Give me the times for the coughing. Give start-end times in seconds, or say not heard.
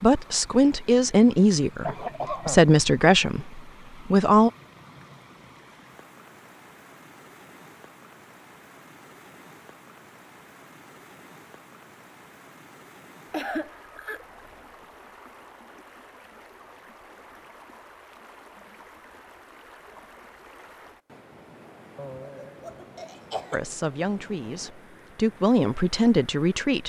1.8-2.7, 13.3-14.2, 21.9-23.6.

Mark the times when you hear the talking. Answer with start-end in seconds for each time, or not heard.
0.0-4.5, 23.5-26.8.